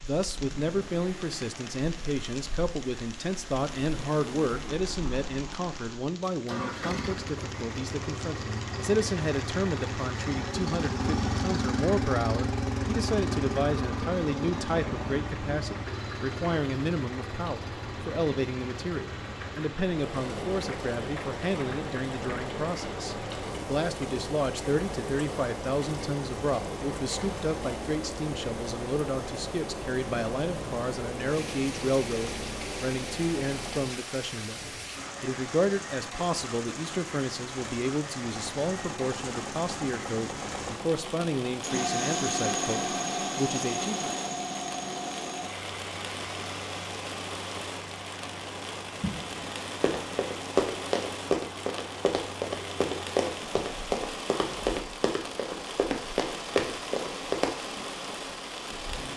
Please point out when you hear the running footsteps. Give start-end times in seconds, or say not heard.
49.0-57.5.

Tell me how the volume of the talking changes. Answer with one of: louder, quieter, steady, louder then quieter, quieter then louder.
steady.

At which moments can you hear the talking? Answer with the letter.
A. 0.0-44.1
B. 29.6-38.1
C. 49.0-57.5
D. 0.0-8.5
A.